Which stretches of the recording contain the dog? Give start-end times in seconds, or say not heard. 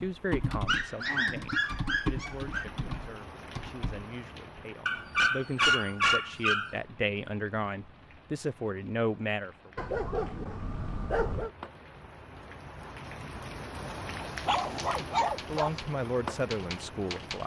0.7-2.6, 4.8-6.8, 9.8-11.5, 14.2-15.7.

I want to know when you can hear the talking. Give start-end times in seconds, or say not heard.
0.0-9.7, 15.4-17.4.